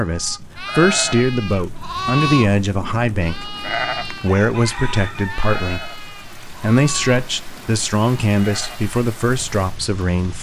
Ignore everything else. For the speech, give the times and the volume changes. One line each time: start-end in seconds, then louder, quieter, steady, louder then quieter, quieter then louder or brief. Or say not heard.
0.0-10.3 steady.